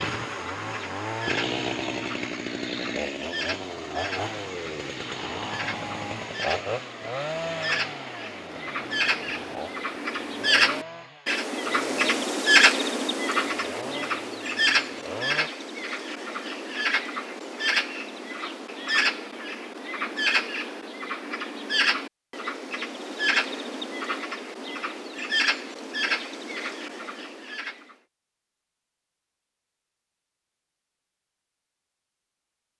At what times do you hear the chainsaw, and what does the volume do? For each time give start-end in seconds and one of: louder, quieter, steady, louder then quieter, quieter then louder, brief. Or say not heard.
0.0-15.5 quieter.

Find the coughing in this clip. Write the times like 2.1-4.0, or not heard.
not heard.